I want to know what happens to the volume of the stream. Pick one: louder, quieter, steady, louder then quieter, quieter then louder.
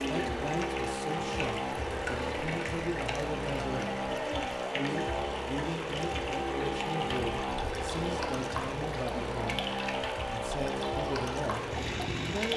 steady.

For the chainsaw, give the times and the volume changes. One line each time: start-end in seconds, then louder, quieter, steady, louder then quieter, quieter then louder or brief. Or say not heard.
0.0-12.5 steady.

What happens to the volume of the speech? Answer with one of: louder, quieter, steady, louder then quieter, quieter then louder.
steady.